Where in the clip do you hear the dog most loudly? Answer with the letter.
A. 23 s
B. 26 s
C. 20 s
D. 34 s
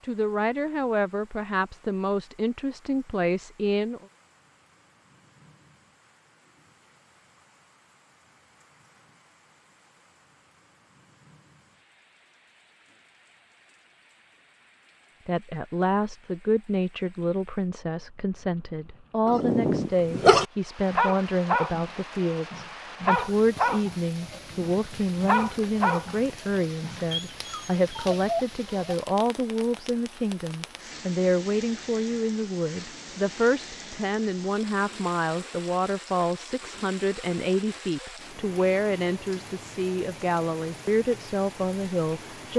C.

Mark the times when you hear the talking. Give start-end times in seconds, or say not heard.
0.0-4.0, 15.2-42.5.